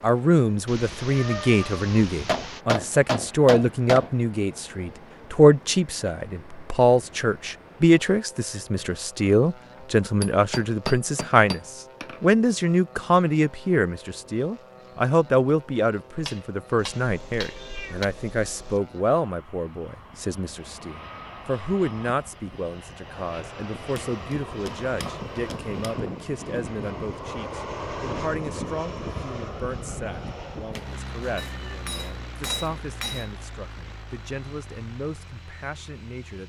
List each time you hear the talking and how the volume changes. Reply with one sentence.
The talking can be heard from 0.0 to 36.4 s, getting quieter.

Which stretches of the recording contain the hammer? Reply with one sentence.
The hammer can be heard from 2.2 to 4.1 s, from 10.2 to 12.2 s, from 16.2 to 18.1 s, from 23.9 to 25.9 s and from 31.4 to 33.3 s.